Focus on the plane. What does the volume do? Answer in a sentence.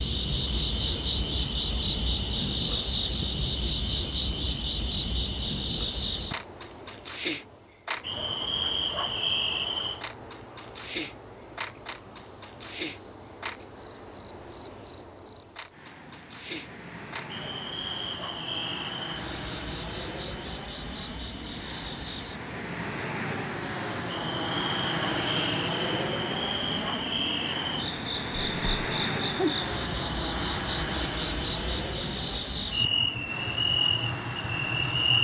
The volume of the plane goes up.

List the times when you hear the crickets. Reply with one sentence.
The crickets can be heard from 0.0 to 35.1 s.